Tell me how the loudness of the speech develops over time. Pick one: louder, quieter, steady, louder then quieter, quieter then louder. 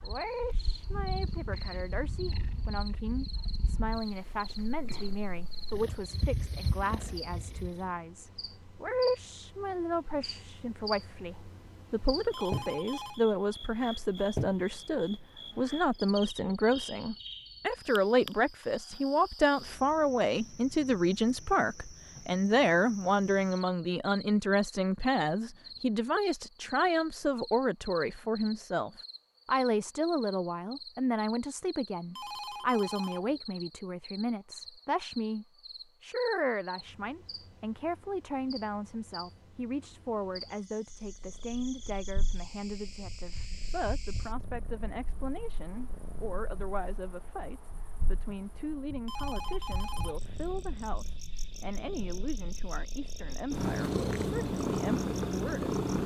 louder then quieter.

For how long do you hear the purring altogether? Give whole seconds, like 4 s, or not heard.
23 s.